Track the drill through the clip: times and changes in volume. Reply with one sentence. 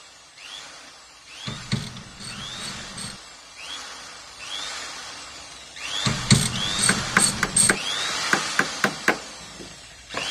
The drill can be heard from 0.0 to 10.2 s, getting louder.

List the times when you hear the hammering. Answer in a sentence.
You can hear the hammering from 6.7 to 10.2 s.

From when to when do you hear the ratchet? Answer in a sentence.
You can hear the ratchet from 1.4 to 3.2 s and from 6.0 to 7.8 s.